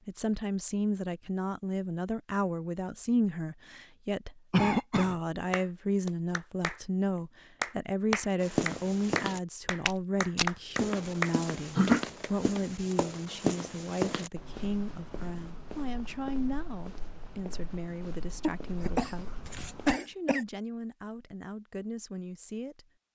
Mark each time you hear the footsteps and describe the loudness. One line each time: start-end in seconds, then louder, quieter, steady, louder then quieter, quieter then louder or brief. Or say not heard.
8.4-19.9 quieter.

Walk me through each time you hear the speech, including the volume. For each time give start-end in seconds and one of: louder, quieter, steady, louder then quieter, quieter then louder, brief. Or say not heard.
0.1-22.9 quieter.